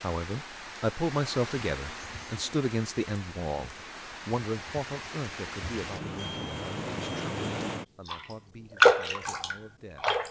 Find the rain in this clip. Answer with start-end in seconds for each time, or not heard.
0.0-10.2.